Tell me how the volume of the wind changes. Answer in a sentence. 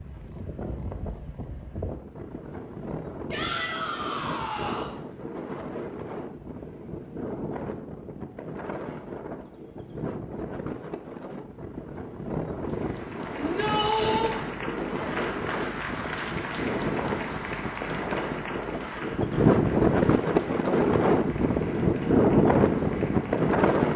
The volume of the wind goes up.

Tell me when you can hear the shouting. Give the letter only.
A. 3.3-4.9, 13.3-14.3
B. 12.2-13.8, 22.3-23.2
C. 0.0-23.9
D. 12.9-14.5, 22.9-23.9
A.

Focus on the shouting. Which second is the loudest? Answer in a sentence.
The loudest moment of the shouting is at 14 seconds.